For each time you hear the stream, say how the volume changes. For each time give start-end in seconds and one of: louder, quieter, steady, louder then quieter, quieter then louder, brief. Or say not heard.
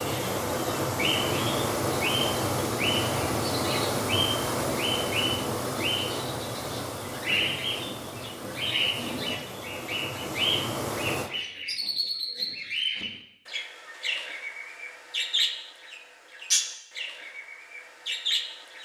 0.0-11.3 quieter.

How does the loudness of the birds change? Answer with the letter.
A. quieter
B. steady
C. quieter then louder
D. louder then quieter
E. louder
B.